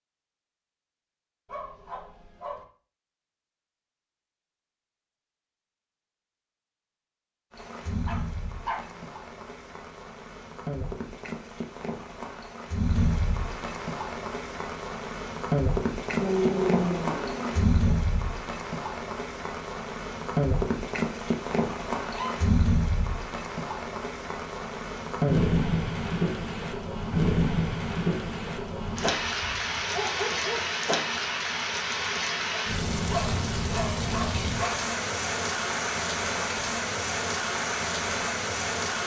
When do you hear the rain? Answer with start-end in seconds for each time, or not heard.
7.5-39.0.